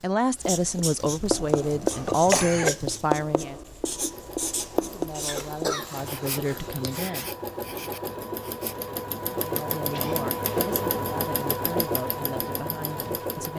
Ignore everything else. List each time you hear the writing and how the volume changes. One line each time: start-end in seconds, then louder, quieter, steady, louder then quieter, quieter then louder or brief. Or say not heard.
0.4-8.9 quieter.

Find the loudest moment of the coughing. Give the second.
2 s.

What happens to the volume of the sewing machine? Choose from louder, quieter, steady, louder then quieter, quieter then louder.
louder.